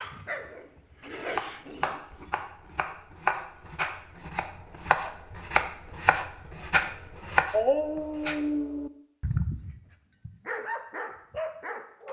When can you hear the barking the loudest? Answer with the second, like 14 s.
8 s.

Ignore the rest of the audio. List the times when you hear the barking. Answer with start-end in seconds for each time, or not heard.
0.0-2.2, 7.5-12.0.